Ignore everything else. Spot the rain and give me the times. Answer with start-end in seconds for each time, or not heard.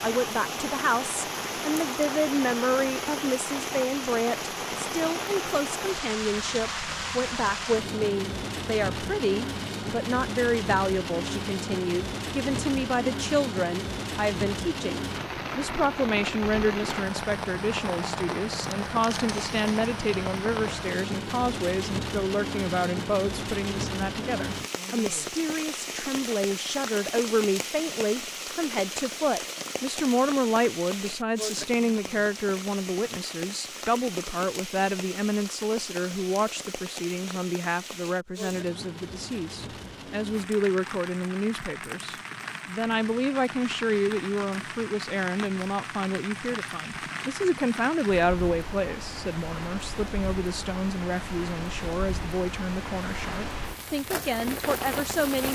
0.0-55.4.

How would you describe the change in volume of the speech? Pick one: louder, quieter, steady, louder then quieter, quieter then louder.
steady.